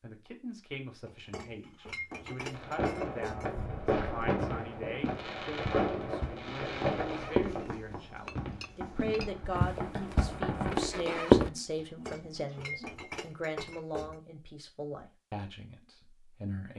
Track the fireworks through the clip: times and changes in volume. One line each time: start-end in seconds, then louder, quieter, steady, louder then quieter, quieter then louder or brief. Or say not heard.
2.5-10.8 quieter.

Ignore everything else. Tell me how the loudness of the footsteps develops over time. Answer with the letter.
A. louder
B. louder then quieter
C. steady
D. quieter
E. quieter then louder
A.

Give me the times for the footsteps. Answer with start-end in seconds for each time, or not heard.
3.5-11.5.